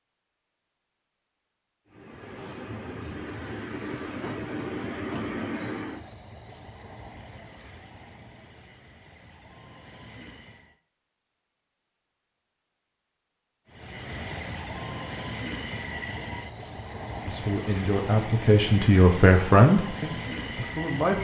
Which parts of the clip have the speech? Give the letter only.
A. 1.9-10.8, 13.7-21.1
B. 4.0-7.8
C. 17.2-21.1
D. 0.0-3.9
C.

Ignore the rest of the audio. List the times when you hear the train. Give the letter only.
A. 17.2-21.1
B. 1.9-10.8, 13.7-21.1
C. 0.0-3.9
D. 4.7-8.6
B.